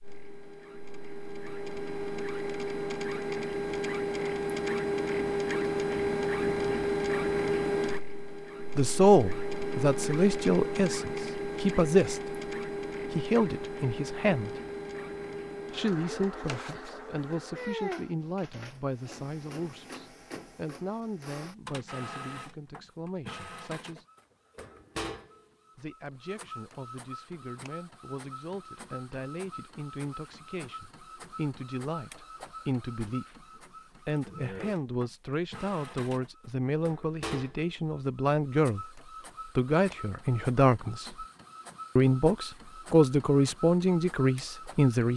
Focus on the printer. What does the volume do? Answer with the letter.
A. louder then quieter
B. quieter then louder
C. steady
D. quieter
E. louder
D.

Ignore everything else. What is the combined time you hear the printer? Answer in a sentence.
You can hear the printer for 45 seconds altogether.